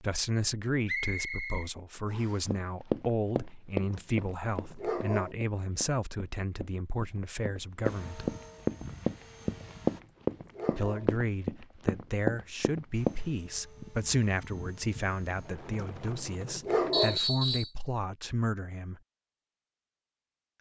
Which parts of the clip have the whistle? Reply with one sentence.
You can hear the whistle from 0.8 to 2.4 s and from 16.9 to 17.7 s.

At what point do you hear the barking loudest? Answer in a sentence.
The volume of the barking peaks at 17 seconds.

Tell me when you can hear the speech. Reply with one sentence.
The speech can be heard from 0.0 to 8.3 s and from 10.7 to 19.0 s.